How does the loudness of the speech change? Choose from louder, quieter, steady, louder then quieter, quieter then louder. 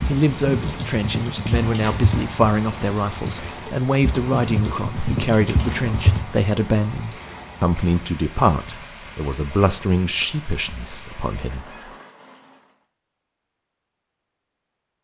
steady.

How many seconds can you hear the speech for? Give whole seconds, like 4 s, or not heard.
12 s.